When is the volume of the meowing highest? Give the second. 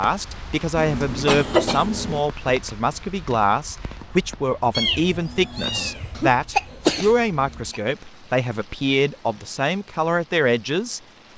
5 s.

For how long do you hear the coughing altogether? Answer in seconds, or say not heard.
3 s.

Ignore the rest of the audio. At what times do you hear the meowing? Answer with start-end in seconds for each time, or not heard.
4.7-6.2.